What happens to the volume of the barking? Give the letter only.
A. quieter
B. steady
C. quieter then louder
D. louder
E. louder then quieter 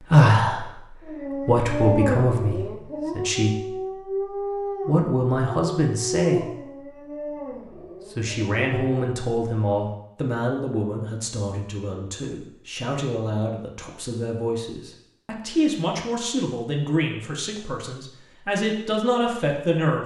A.